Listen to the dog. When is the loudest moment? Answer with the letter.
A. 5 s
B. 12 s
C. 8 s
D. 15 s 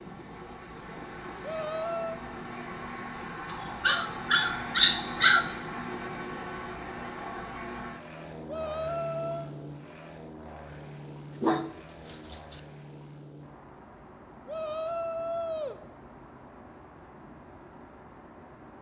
A.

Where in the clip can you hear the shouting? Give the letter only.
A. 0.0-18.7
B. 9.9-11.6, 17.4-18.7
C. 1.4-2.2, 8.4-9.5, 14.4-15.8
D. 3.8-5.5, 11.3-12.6
C.